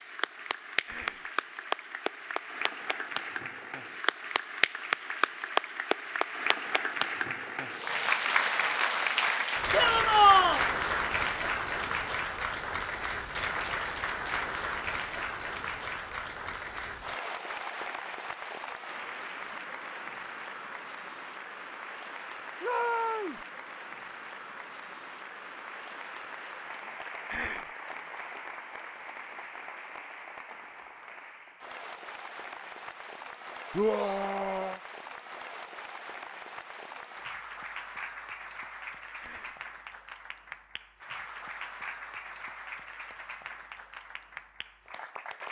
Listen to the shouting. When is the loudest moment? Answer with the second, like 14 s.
10 s.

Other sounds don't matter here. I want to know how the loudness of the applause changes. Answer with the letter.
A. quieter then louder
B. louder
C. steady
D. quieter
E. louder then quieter
D.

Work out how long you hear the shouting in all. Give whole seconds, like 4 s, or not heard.
3 s.